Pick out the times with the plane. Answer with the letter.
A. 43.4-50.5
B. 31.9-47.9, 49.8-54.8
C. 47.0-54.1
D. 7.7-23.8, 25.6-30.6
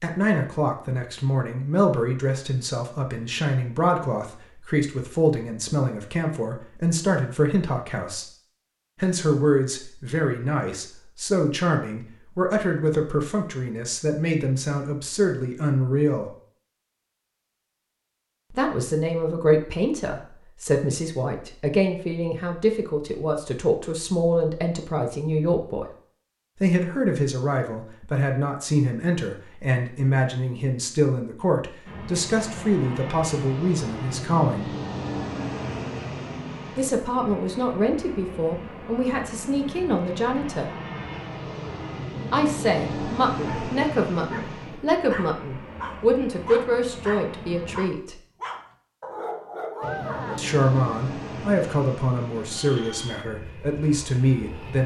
B.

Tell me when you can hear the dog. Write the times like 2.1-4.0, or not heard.
43.4-50.5.